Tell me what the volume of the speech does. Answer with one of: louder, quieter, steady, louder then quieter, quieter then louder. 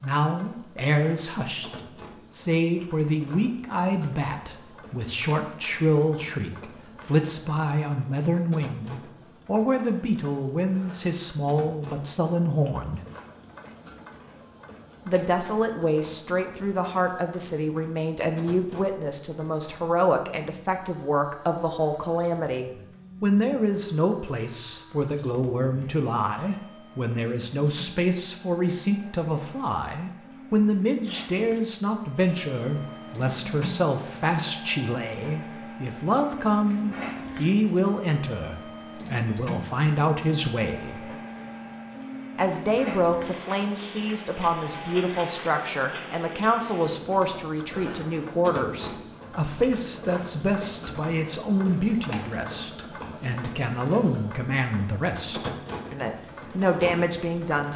steady.